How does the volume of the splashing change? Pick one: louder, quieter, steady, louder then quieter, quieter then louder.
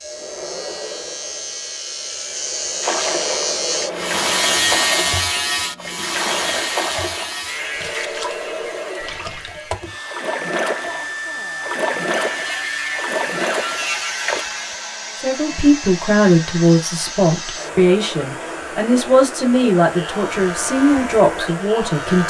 quieter then louder.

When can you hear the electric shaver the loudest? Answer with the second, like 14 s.
5 s.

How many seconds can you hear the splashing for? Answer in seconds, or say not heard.
12 s.